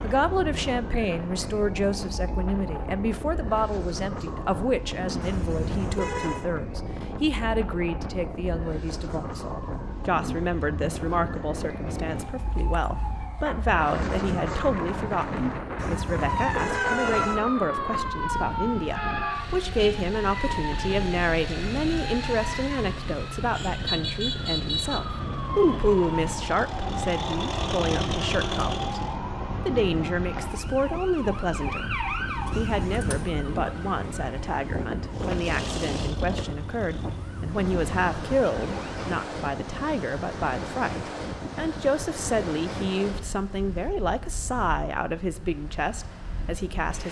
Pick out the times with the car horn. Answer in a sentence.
You can hear the car horn from 5.2 to 6.5 s, from 15.8 to 17.4 s and from 32.5 to 33.2 s.